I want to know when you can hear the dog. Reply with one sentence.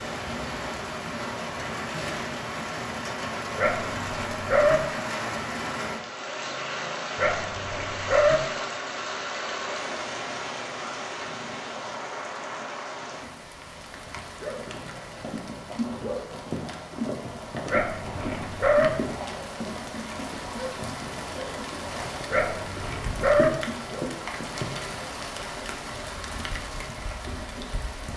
You can hear the dog from 3.5 to 4.8 s, from 7.2 to 8.3 s, from 17.7 to 18.9 s and from 22.3 to 23.5 s.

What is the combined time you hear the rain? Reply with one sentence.
You can hear the rain for 28 seconds altogether.